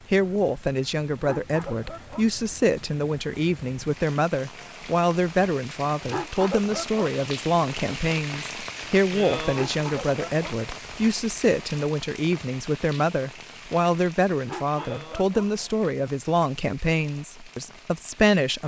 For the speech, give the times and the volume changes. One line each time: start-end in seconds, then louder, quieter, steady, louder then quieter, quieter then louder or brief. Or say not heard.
0.1-18.6 steady.